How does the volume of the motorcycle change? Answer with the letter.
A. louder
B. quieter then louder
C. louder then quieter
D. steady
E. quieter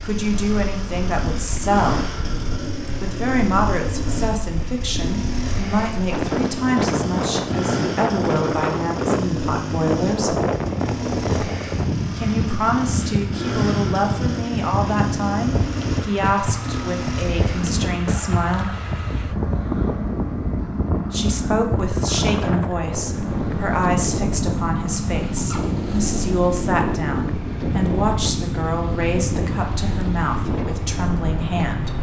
D.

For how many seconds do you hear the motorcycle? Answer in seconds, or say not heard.
32 s.